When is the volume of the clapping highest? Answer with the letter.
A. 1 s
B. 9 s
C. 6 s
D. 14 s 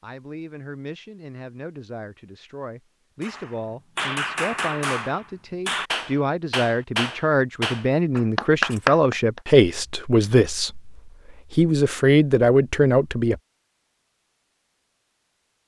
B.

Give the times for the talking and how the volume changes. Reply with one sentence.
You can hear the talking from 0.0 to 13.4 s, getting louder.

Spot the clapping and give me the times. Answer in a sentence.
The clapping can be heard from 3.2 to 9.4 s.